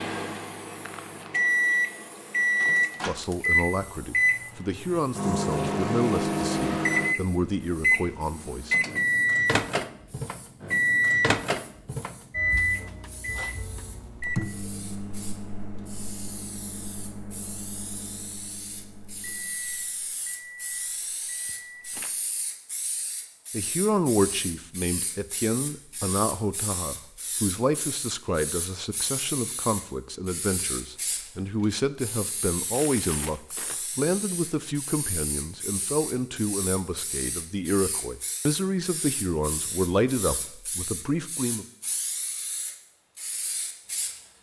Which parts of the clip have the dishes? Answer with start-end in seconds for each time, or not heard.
not heard.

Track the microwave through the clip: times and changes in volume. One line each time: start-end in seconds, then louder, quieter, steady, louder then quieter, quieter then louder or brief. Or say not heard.
0.0-22.1 quieter.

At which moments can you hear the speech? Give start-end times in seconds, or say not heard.
3.0-8.8, 23.5-41.6.